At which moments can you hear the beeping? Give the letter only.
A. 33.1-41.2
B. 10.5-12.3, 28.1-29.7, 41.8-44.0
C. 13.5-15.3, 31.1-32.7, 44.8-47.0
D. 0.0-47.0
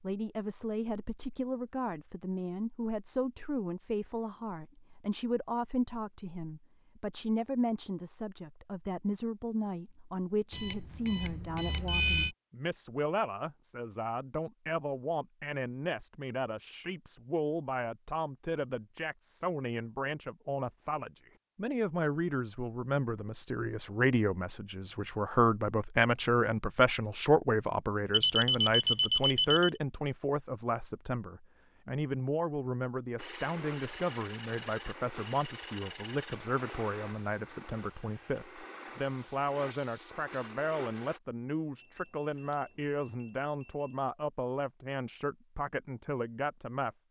B.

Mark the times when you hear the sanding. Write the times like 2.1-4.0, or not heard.
33.1-41.2.